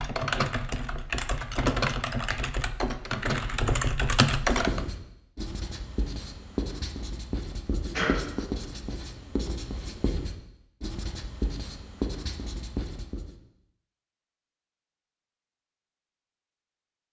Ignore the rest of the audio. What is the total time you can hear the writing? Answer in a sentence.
The writing can be heard for 9 seconds in total.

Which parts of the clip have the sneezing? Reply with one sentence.
The sneezing can be heard from 7.9 to 8.7 s.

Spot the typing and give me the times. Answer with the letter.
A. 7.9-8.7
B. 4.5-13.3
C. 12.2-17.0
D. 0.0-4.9
D.